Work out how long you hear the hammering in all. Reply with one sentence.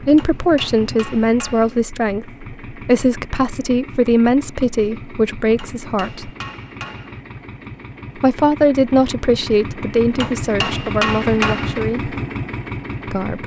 The hammering can be heard for 5 seconds in total.